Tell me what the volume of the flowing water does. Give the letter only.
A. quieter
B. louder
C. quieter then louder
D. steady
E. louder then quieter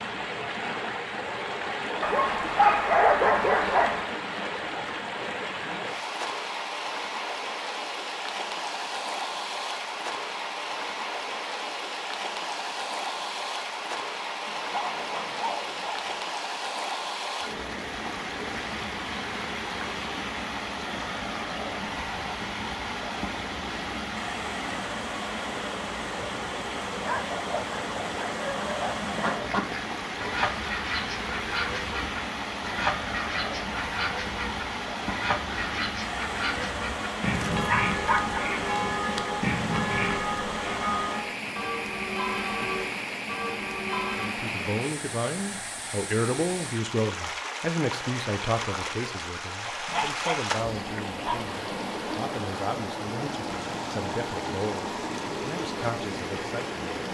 D.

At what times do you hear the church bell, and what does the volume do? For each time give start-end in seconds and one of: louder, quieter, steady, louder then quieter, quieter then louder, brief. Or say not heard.
37.4-44.3 steady.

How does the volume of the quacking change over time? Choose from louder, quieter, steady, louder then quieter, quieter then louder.
steady.